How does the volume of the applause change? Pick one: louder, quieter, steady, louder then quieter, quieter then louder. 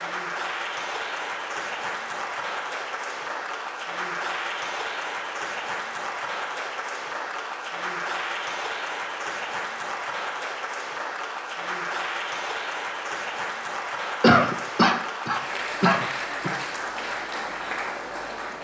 steady.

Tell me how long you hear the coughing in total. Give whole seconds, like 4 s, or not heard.
2 s.